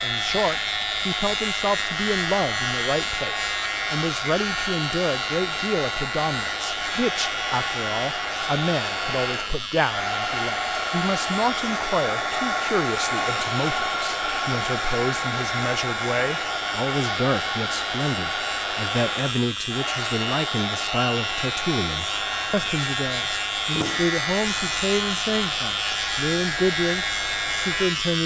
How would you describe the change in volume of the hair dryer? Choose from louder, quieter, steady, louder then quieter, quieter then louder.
louder then quieter.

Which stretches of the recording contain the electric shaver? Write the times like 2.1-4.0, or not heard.
0.0-28.2.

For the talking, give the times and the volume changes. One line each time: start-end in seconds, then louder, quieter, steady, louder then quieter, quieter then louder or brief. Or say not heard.
0.0-28.2 steady.